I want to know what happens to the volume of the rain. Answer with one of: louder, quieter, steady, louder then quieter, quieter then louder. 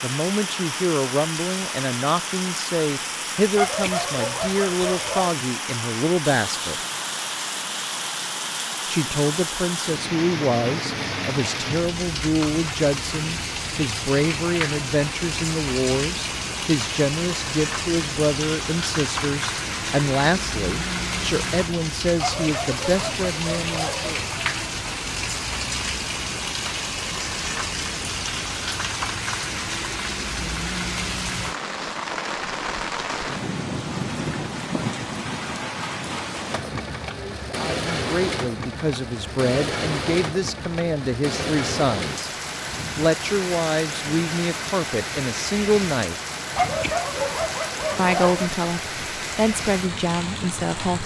steady.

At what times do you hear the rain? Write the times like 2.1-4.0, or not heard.
0.0-51.0.